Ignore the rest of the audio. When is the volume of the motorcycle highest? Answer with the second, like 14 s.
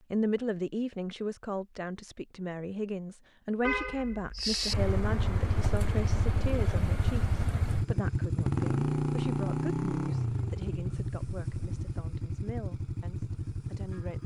9 s.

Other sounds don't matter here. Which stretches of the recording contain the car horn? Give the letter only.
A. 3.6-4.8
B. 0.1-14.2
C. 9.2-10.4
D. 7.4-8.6
A.